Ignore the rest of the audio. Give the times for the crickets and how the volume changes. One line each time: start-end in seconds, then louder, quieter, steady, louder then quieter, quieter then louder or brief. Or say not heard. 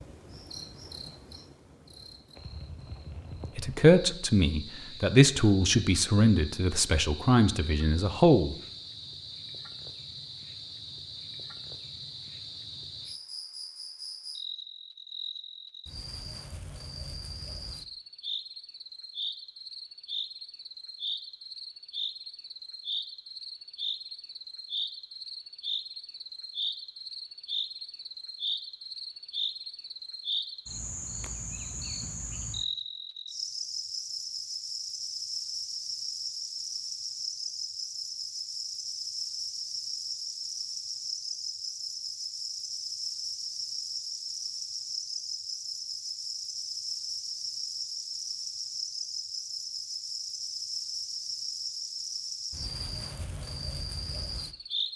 0.0-54.9 louder.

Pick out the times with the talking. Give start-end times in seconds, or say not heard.
3.5-8.6.